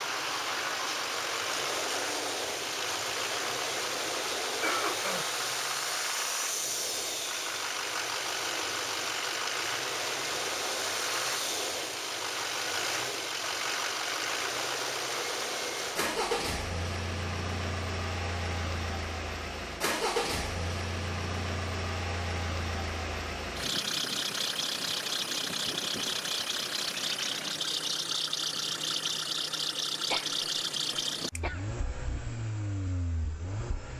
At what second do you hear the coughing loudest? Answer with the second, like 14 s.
5 s.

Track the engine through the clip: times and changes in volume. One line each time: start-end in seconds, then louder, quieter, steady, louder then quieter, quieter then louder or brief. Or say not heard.
0.0-33.9 steady.